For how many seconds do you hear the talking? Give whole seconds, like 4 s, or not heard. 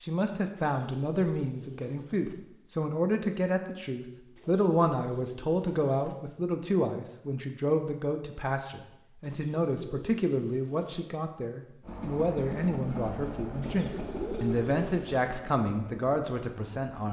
17 s.